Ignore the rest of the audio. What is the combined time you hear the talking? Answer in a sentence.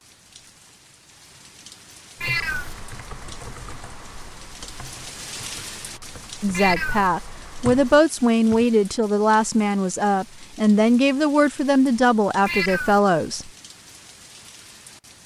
You can hear the talking for 7 seconds altogether.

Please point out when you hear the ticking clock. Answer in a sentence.
You can't hear the ticking clock here.